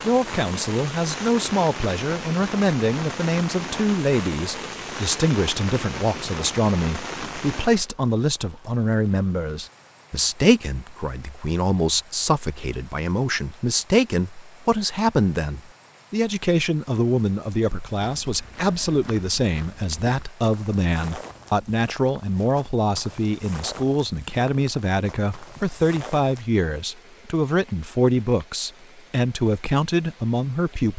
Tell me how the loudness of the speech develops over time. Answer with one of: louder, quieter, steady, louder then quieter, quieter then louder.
steady.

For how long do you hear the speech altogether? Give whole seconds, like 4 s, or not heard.
31 s.